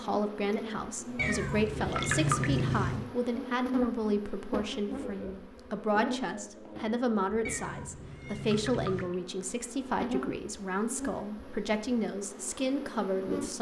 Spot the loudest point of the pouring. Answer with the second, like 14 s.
2 s.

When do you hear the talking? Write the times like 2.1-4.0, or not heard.
0.0-13.5.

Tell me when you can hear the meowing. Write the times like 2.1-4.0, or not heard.
1.1-3.0, 7.5-9.1.